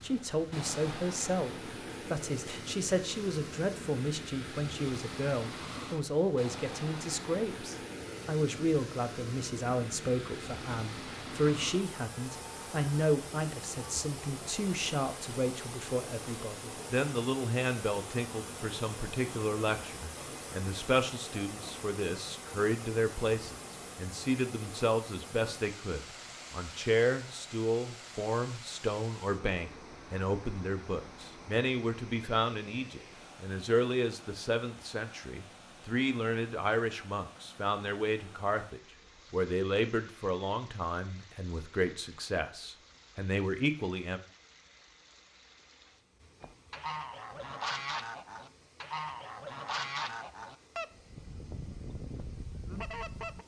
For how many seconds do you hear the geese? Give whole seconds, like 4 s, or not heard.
7 s.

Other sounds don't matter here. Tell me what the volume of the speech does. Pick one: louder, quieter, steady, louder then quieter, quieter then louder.
steady.